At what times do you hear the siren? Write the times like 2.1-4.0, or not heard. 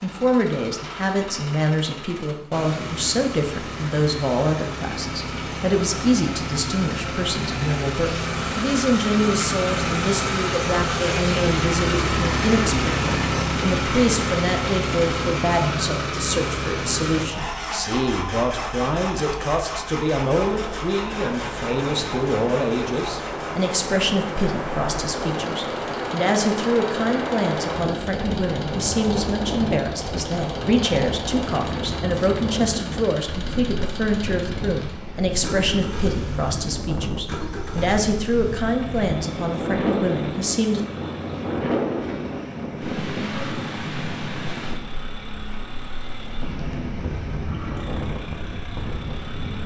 not heard.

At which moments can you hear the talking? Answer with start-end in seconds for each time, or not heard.
0.0-40.8.